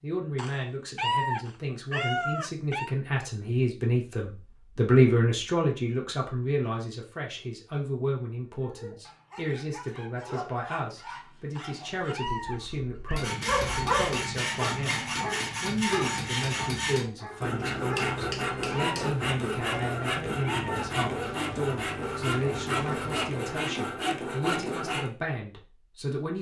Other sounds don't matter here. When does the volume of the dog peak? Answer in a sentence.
The loudest moment of the dog is at 14 seconds.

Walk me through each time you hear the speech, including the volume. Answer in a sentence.
The speech can be heard from 0.0 to 26.3 s, getting quieter.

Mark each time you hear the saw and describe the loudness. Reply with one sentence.
The saw can be heard from 13.2 to 25.1 s, at a steady volume.